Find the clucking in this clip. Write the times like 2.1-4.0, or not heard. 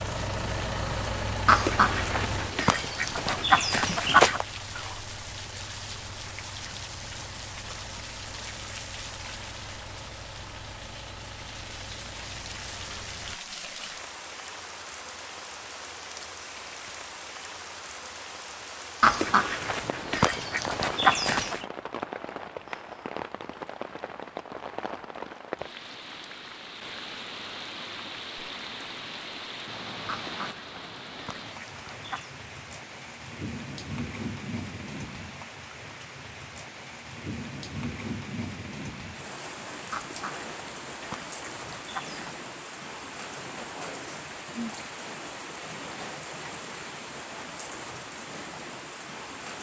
1.4-4.5, 19.0-21.6, 30.1-32.3, 39.9-42.4.